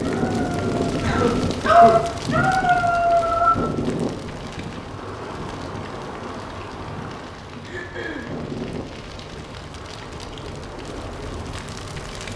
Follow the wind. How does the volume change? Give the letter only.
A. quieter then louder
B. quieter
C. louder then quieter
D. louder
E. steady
B.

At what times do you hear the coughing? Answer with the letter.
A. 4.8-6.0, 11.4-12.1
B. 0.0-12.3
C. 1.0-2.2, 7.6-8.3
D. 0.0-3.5
C.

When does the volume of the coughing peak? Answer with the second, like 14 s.
2 s.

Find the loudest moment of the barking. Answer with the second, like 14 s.
2 s.